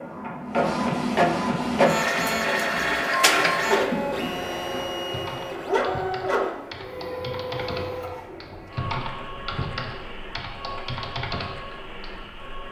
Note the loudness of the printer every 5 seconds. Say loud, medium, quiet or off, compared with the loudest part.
loud, medium, quiet.